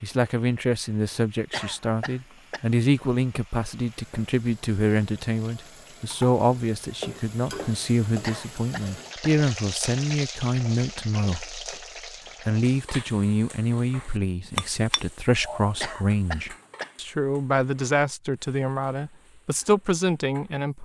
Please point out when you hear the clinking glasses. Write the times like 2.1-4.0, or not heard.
14.6-15.7.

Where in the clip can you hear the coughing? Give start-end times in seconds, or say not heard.
1.5-2.6, 8.2-9.3, 15.8-16.9.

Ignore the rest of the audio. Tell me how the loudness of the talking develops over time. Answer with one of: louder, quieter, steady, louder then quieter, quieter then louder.
steady.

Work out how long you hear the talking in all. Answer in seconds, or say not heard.
20 s.